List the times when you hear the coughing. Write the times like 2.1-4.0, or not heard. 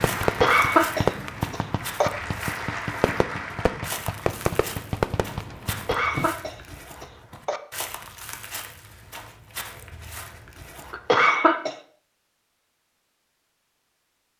0.2-2.1, 5.7-7.6, 10.9-11.8.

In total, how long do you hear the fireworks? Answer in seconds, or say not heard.
6 s.